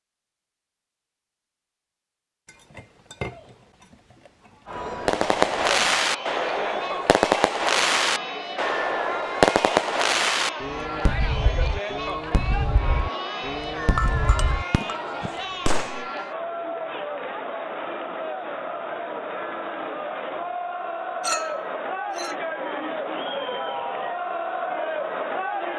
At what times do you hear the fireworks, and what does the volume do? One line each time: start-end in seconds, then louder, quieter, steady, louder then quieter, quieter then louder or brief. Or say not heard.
5.0-16.1 quieter.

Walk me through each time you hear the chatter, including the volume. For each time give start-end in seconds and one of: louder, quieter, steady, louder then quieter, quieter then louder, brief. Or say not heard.
4.7-25.7 steady.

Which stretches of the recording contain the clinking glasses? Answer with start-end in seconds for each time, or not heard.
2.5-5.1, 13.9-15.2, 21.2-22.4.